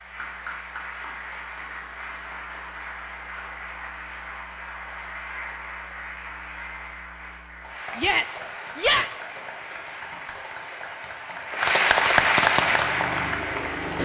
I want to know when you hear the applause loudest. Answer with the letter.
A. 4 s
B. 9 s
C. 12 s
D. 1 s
C.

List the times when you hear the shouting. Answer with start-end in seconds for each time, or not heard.
8.0-9.1.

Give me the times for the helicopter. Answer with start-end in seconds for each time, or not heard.
12.6-14.0.